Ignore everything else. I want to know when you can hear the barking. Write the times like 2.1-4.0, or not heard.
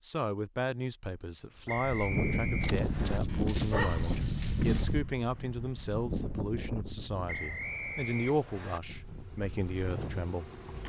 2.6-5.0.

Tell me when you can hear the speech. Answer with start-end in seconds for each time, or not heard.
0.0-10.5.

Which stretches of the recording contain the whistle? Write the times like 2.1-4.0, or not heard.
1.6-3.2, 7.2-8.8.